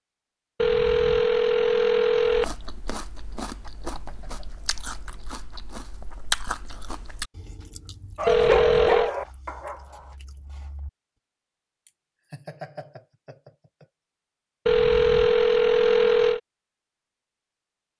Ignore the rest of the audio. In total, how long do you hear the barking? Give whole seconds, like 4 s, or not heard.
2 s.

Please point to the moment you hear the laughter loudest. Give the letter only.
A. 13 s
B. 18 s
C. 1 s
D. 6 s
A.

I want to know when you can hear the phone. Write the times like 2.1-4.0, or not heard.
0.6-2.5, 8.2-9.1, 14.7-16.4.